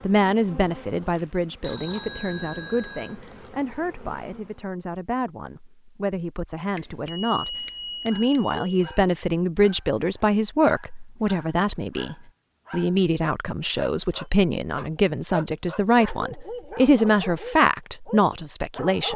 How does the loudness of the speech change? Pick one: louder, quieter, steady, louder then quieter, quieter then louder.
louder.